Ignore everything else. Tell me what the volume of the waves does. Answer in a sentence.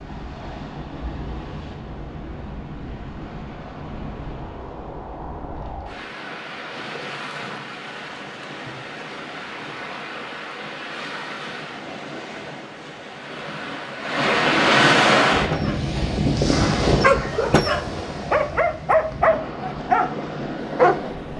The loudness of the waves goes up, then down.